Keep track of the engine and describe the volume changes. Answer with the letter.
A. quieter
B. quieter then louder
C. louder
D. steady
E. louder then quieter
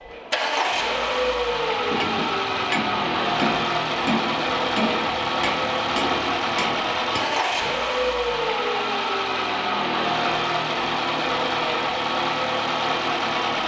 D.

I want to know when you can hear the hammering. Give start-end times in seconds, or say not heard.
1.8-7.8.